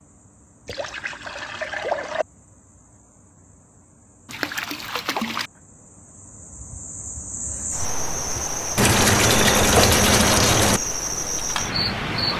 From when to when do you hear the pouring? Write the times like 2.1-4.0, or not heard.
0.7-2.2, 4.2-5.5, 8.8-10.8.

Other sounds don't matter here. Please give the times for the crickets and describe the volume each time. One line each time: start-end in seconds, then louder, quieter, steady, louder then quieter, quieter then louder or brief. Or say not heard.
0.0-12.3 louder.